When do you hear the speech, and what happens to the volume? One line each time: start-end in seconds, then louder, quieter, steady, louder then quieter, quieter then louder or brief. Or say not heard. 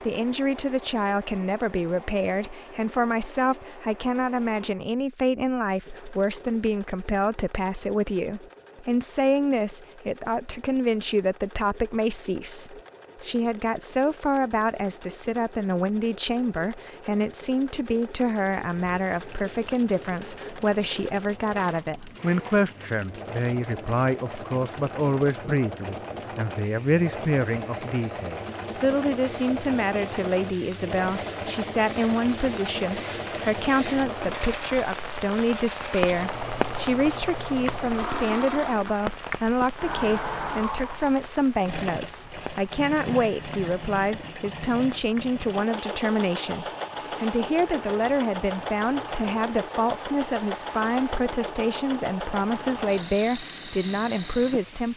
0.0-54.9 steady.